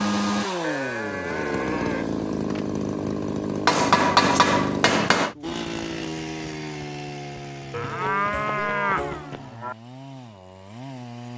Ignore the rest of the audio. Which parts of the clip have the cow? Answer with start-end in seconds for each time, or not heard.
0.6-2.6, 7.7-9.8.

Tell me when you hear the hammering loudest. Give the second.
4 s.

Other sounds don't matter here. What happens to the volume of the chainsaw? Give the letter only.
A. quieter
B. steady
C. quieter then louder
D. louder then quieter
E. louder
A.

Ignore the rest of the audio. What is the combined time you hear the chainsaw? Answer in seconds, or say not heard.
11 s.